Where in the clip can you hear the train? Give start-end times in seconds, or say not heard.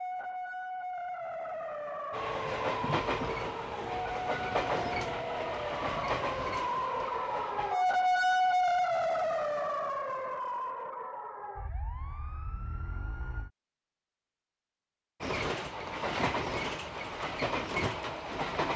2.1-7.8, 15.2-18.7.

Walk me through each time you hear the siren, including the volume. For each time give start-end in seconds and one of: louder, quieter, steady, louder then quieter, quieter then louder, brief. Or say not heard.
0.0-13.5 louder then quieter.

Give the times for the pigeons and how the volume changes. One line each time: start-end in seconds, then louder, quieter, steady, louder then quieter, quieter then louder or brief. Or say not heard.
not heard.